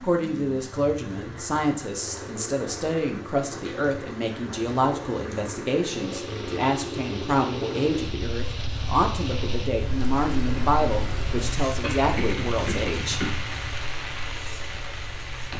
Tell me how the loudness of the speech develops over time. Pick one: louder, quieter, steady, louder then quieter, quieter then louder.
steady.